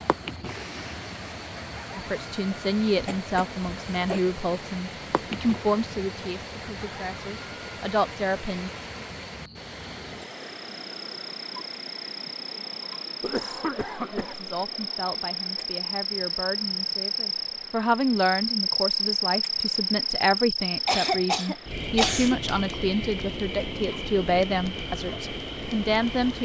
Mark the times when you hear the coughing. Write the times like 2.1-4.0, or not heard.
3.0-4.2, 13.2-14.6, 20.9-22.4.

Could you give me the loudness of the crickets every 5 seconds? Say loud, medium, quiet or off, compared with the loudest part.
quiet, quiet, medium, loud, loud, medium.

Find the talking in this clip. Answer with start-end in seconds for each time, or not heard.
1.9-8.7, 14.1-26.4.